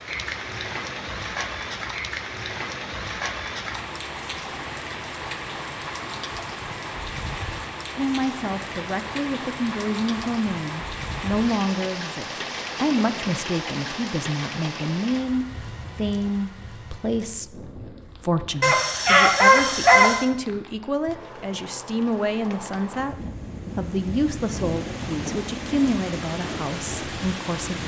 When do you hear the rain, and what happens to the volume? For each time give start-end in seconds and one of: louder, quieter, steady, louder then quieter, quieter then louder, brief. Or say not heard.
0.0-27.8 quieter then louder.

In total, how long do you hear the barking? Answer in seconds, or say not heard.
2 s.